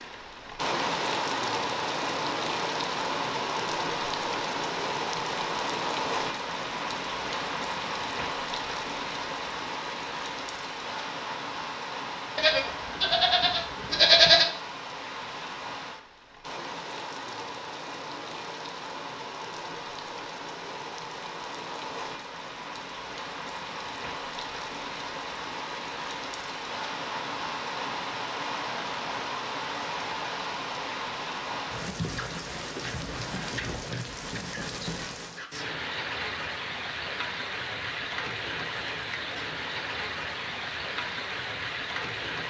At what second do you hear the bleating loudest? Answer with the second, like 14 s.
14 s.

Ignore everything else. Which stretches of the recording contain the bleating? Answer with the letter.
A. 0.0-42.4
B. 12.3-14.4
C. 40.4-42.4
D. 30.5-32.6
B.